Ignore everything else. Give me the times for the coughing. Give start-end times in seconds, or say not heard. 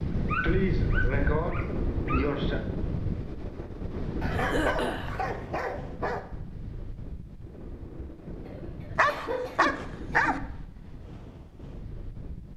0.4-2.6, 4.3-5.1, 8.4-10.6.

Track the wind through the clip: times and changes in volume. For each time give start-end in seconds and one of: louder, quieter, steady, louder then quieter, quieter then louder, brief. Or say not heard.
0.0-12.5 quieter.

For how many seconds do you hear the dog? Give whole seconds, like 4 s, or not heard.
6 s.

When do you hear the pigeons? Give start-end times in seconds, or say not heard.
not heard.